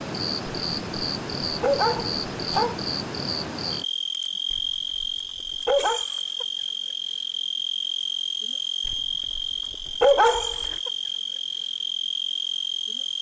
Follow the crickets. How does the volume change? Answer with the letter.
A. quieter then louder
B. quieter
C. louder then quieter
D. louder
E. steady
E.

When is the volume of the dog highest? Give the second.
10 s.